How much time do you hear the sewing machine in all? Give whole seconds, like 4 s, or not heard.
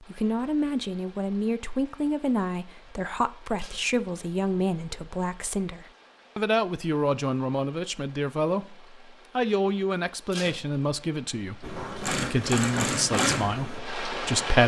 3 s.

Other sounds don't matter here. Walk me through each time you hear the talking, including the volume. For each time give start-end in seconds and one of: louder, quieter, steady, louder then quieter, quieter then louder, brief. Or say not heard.
0.0-14.6 steady.